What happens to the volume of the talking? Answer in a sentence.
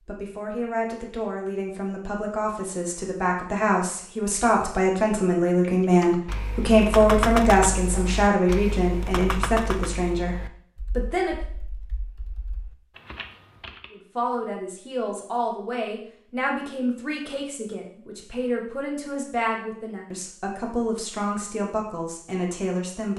The loudness of the talking goes up, then down.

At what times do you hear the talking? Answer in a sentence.
The talking can be heard from 0.1 to 11.3 s and from 13.9 to 23.1 s.